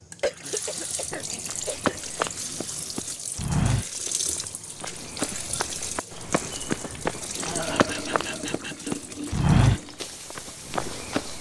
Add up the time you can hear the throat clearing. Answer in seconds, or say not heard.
4 s.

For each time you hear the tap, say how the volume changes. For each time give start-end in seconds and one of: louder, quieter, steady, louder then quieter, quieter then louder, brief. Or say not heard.
0.0-11.3 steady.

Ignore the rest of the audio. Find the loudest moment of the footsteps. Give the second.
10 s.